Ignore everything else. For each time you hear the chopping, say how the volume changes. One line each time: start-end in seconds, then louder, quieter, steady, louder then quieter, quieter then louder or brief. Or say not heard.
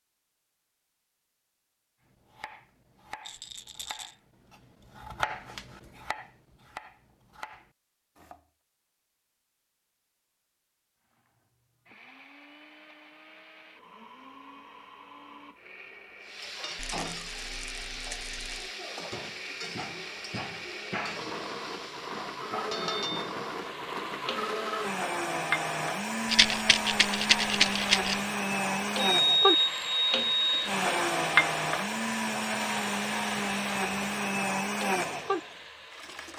2.1-8.4 louder then quieter.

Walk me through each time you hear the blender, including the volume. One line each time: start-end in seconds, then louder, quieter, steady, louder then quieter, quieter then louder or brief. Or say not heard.
11.1-36.3 louder.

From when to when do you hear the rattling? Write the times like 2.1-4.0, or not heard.
3.2-4.2, 16.8-18.7, 26.2-28.2.